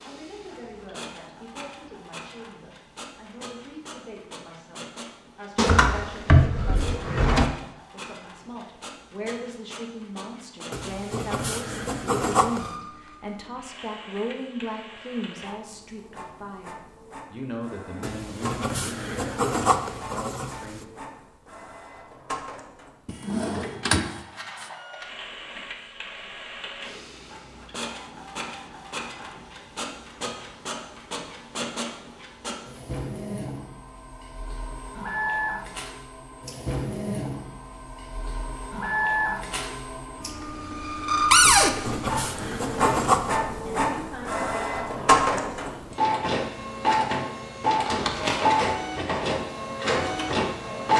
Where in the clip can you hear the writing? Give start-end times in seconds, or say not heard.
10.7-12.8, 18.0-20.9, 41.5-43.4.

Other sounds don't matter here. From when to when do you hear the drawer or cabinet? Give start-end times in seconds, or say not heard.
5.5-7.5, 23.1-24.1, 41.3-41.8.